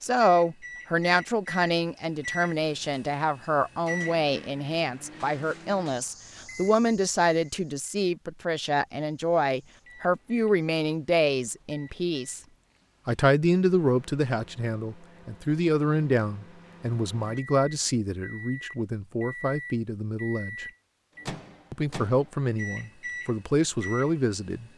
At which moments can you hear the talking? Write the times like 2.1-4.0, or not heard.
0.0-12.4, 13.1-20.6, 21.7-24.6.